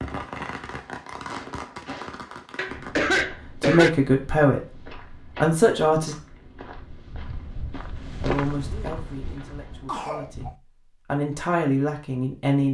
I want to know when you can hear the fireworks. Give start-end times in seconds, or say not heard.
0.0-3.1.